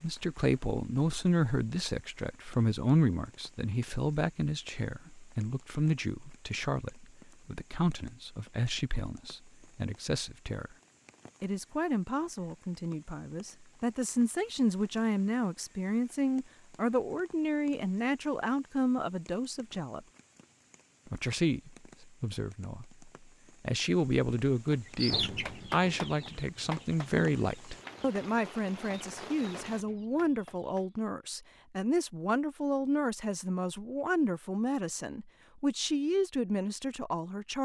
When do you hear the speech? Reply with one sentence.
You can hear the speech from 0.0 to 10.7 s, from 11.4 to 20.1 s and from 21.1 to 37.6 s.